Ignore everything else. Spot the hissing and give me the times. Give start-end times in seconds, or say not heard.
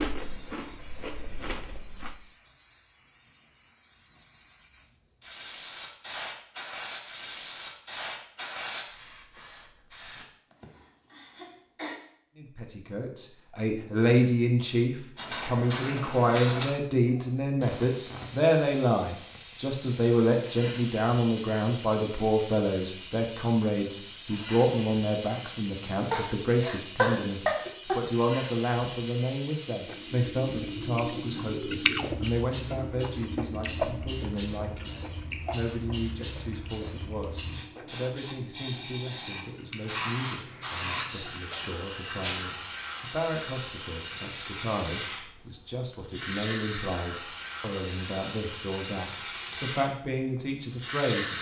0.0-10.2, 15.2-51.3.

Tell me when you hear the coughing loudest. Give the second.
27 s.